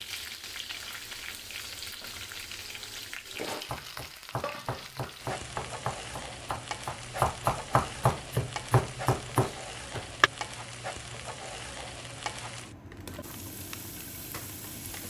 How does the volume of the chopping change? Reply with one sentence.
The volume of the chopping goes up.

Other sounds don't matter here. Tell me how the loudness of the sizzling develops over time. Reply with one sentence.
The volume of the sizzling stays about the same.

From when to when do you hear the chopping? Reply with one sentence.
The chopping can be heard from 3.5 to 10.3 s.